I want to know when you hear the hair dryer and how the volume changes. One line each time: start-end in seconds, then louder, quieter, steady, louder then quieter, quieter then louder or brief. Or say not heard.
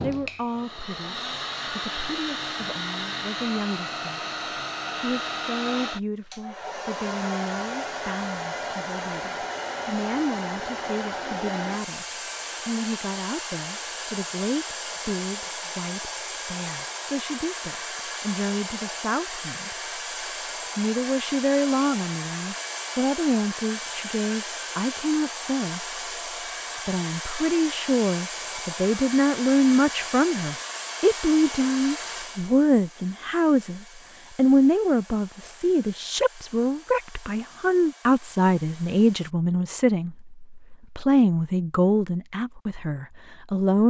0.0-39.4 quieter.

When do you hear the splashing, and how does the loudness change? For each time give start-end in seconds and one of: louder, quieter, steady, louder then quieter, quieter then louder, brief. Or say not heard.
not heard.